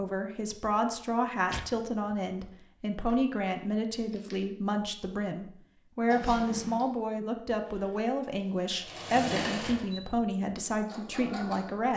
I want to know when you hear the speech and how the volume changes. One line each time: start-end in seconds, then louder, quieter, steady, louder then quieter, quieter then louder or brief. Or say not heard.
0.0-11.9 steady.